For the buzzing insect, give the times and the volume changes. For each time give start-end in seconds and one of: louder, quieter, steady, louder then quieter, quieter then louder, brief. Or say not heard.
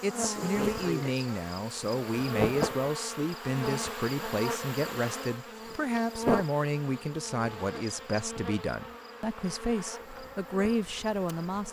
0.0-11.6 quieter.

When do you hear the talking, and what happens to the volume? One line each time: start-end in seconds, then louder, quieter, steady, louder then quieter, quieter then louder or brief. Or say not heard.
0.0-11.6 steady.